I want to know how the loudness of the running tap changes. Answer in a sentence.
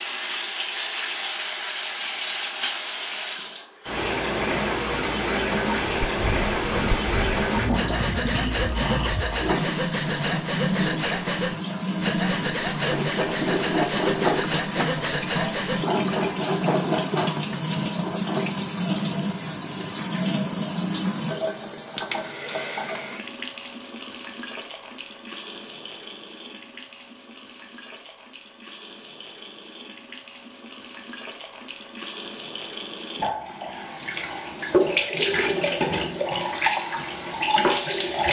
The loudness of the running tap goes down, then up.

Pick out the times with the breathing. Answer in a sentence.
The breathing can be heard from 5.8 to 16.4 s.